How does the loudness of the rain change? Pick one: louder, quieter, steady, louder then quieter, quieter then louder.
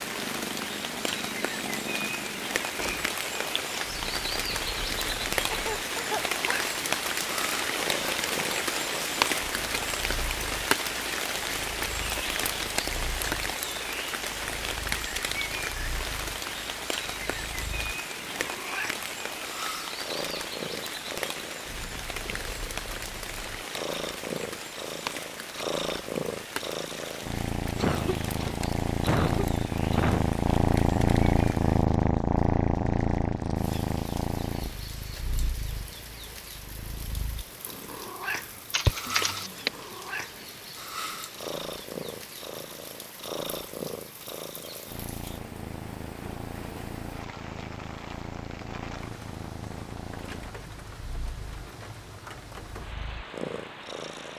quieter.